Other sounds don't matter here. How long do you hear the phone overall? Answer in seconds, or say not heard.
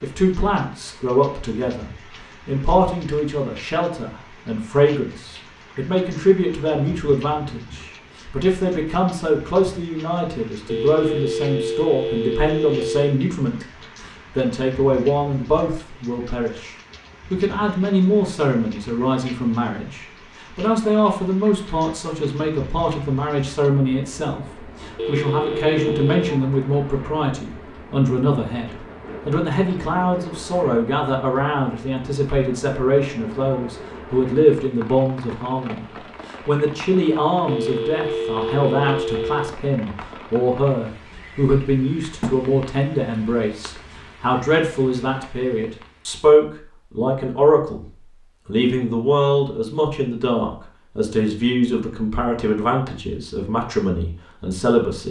6 s.